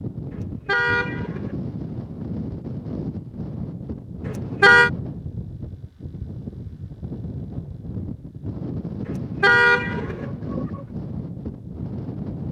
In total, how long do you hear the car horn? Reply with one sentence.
The car horn can be heard for 4 seconds in total.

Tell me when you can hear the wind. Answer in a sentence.
You can hear the wind from 0.0 to 12.4 s.